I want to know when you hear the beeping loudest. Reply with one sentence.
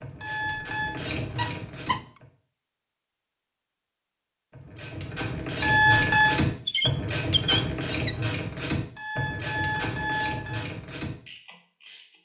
The volume of the beeping peaks at 6 seconds.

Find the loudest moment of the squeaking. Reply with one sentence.
The loudest moment of the squeaking is at 7 seconds.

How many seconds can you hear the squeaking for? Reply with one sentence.
You can hear the squeaking for 2 seconds altogether.